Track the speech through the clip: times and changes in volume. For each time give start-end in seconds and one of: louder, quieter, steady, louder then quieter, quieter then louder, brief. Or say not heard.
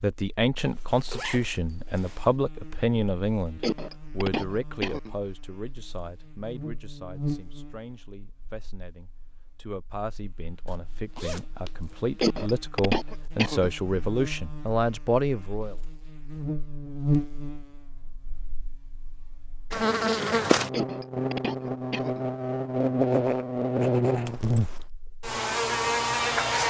0.0-15.8 quieter then louder.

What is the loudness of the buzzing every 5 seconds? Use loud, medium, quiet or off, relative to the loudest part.
quiet, quiet, quiet, medium, loud, loud.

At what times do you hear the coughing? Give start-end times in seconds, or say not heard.
3.6-5.2, 12.2-13.7, 20.7-22.2.